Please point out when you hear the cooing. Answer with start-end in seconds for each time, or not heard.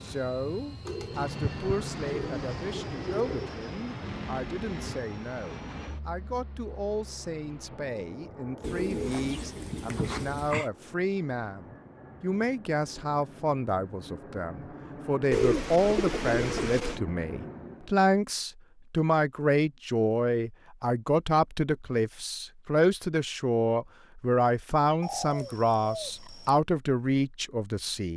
0.8-3.5, 8.6-10.7, 15.3-17.0, 25.0-26.6.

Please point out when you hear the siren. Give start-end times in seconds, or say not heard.
not heard.